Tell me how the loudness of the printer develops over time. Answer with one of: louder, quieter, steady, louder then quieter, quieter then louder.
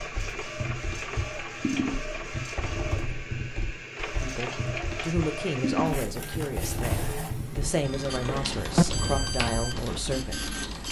steady.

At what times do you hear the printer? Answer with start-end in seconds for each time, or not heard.
0.0-10.8.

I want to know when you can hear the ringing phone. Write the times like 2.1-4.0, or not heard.
7.8-8.8.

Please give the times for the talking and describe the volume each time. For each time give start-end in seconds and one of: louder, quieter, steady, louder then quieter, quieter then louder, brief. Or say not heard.
4.2-10.8 steady.